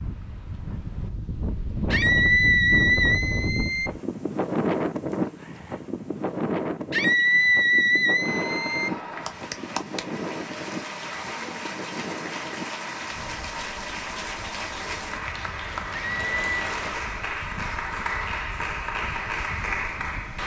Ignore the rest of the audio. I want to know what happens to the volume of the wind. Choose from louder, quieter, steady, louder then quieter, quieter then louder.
quieter.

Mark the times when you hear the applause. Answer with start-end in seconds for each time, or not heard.
8.2-20.4.